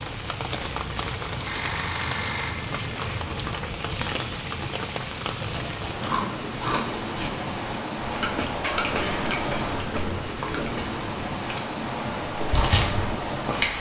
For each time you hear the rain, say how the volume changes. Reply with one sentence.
You can hear the rain from 0.0 to 13.7 s, at a steady volume.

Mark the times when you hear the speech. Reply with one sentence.
The speech can't be heard in this clip.